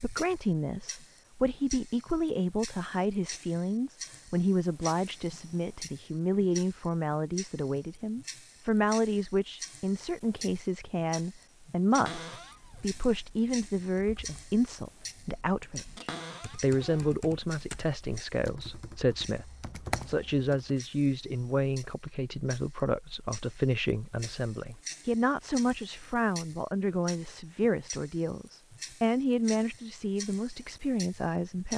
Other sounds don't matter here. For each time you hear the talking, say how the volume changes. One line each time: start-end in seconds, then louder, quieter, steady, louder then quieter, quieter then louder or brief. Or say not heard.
0.0-31.7 steady.